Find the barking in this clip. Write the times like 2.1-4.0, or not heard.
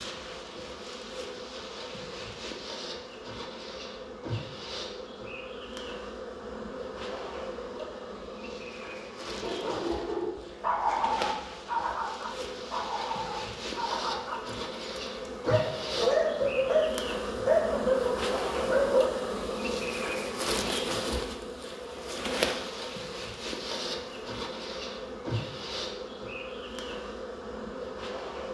9.4-19.1.